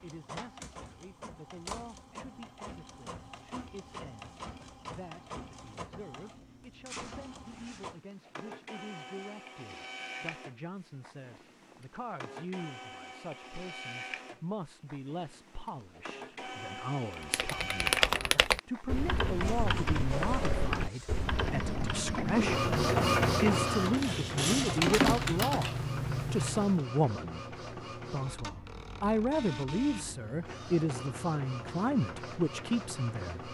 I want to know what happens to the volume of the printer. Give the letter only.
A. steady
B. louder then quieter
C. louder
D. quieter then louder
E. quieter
B.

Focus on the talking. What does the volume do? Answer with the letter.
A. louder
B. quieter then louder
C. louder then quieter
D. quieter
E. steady
A.